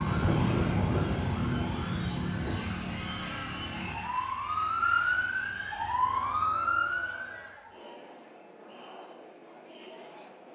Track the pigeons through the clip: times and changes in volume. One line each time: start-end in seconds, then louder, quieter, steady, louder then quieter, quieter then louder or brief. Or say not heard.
not heard.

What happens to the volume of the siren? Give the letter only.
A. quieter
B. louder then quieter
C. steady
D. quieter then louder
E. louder
D.